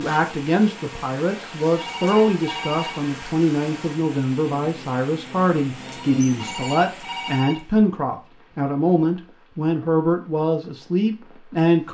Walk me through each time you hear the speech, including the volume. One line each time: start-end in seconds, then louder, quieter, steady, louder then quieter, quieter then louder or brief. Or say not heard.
0.0-11.8 steady.